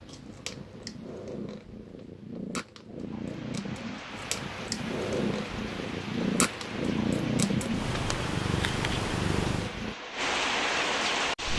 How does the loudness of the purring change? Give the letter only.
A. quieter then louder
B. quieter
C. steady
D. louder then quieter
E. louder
E.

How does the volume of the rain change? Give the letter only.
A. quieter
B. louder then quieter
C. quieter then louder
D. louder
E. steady
D.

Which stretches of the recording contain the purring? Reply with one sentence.
The purring can be heard from 0.0 to 9.9 s.